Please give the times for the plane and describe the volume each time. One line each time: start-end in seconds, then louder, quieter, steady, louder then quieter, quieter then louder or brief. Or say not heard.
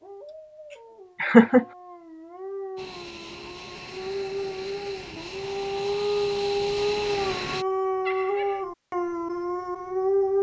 2.8-7.7 louder.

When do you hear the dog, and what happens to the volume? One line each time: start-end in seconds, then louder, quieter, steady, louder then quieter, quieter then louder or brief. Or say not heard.
0.0-10.3 louder.